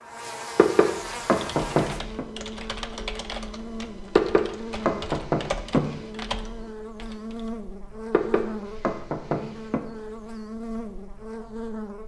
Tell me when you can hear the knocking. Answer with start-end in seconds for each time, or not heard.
0.6-2.2, 4.2-6.0, 8.1-9.8.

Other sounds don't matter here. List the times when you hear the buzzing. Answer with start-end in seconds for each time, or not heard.
0.0-12.0.